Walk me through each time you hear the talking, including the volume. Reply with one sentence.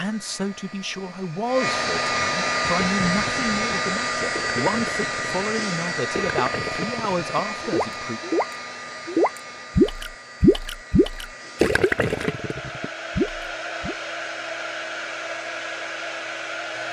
You can hear the talking from 0.0 to 8.2 s, at a steady volume.